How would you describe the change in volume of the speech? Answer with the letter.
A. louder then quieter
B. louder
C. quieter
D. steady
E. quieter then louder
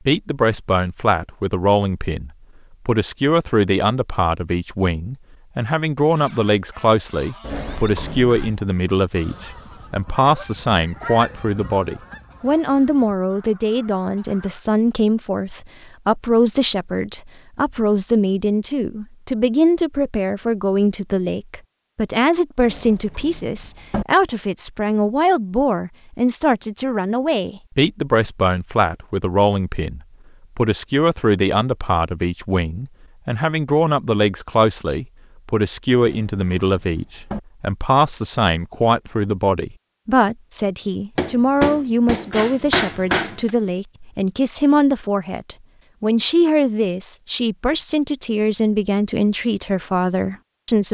D.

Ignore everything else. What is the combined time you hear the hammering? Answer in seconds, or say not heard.
2 s.